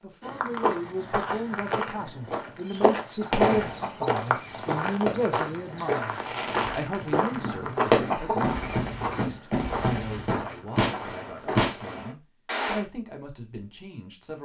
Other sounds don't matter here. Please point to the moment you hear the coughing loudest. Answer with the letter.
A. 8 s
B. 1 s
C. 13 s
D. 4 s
A.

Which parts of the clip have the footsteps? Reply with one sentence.
The footsteps can be heard from 0.2 to 11.7 s.